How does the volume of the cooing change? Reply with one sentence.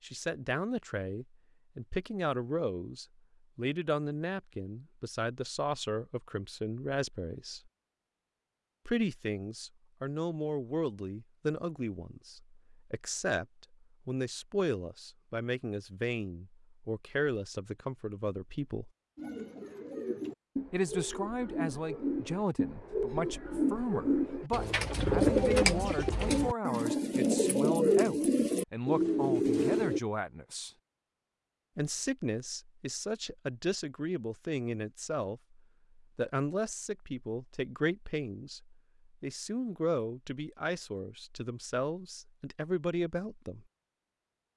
The volume of the cooing goes up.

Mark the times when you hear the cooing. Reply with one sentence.
The cooing can be heard from 19.1 to 30.0 s.